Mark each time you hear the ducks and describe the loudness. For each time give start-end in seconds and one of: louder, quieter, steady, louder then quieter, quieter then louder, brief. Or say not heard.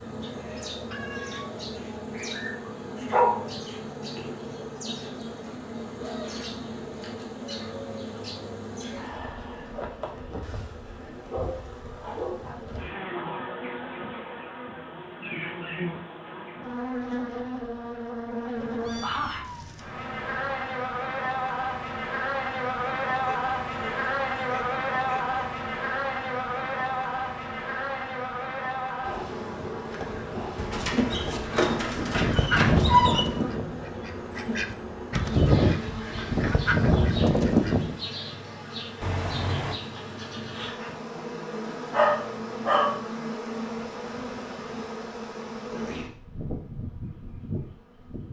32.0-38.0 quieter then louder.